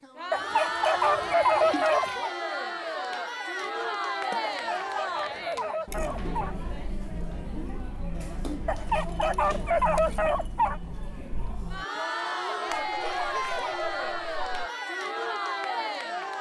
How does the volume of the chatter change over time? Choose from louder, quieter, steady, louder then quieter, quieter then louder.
quieter then louder.